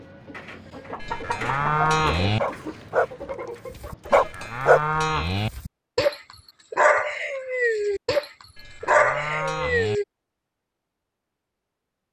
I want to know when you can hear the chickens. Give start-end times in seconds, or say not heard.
0.0-4.5.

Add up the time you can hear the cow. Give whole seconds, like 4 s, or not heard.
4 s.